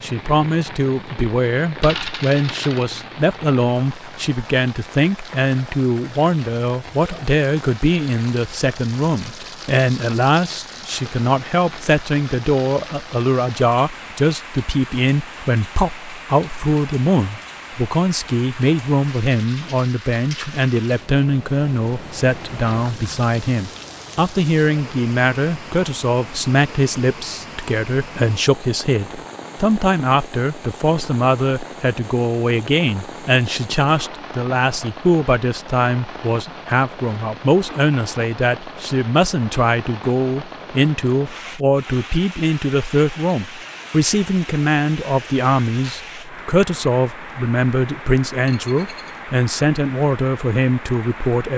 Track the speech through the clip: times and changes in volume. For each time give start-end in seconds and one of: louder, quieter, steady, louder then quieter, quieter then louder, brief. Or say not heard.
0.0-51.5 steady.